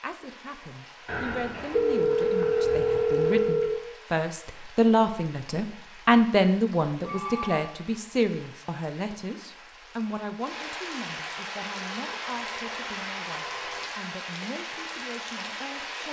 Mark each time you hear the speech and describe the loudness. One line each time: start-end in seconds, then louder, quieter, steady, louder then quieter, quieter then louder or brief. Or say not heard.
0.0-16.0 louder then quieter.